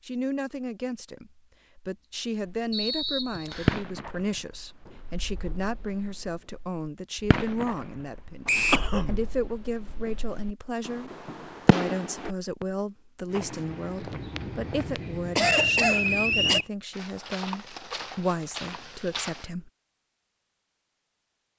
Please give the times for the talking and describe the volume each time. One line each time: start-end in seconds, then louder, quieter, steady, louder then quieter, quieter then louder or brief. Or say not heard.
0.1-19.7 steady.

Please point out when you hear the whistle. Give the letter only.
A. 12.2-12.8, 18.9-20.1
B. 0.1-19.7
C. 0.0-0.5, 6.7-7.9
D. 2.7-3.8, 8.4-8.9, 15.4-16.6
D.